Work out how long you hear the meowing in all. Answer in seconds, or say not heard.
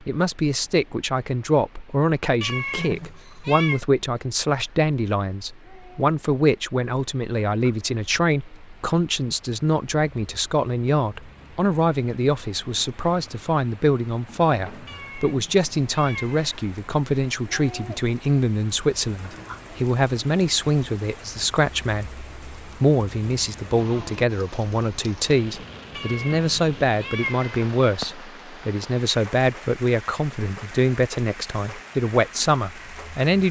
5 s.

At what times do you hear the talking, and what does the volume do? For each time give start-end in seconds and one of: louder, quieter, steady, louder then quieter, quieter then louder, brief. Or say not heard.
0.1-33.4 steady.